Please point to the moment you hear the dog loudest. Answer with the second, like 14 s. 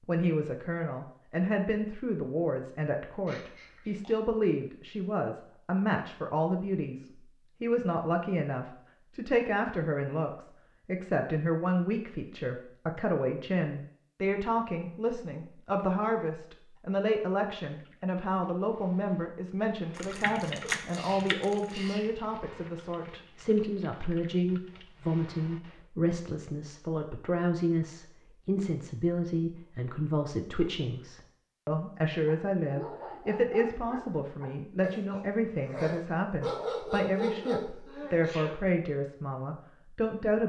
37 s.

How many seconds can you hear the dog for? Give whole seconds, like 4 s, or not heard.
6 s.